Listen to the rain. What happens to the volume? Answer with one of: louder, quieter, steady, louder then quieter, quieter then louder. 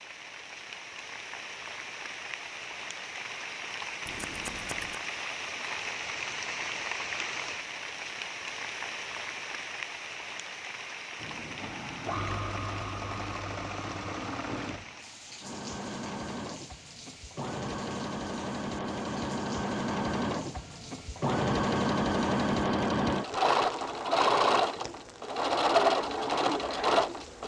quieter.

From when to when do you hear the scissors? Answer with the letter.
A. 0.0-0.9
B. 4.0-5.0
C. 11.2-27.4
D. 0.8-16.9
B.